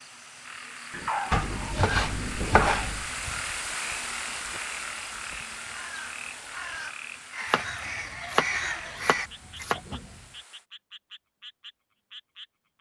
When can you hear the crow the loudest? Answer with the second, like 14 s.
9 s.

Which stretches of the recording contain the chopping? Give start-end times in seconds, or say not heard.
1.3-3.0, 7.5-10.2.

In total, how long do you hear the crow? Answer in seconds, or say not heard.
7 s.